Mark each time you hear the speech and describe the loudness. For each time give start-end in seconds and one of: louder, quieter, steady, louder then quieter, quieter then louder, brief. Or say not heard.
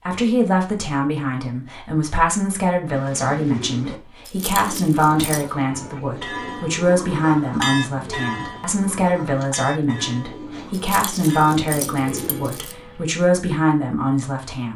0.1-14.7 steady.